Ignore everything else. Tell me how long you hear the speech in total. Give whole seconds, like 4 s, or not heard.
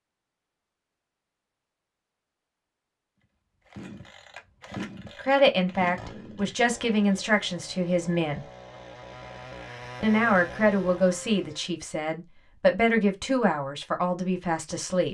8 s.